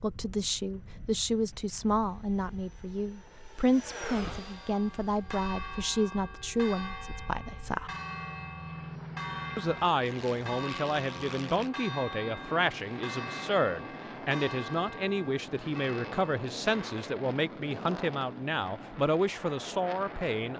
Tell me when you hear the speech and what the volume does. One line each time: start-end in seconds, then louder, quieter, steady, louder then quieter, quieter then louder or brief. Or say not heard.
0.0-7.9 steady
9.6-20.5 steady.